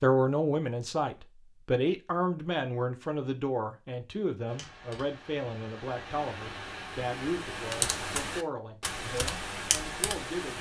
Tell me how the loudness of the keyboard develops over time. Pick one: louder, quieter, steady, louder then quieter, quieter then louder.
louder.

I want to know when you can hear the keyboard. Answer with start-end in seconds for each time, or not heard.
4.5-10.5.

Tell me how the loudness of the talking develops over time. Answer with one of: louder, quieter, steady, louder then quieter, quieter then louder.
quieter.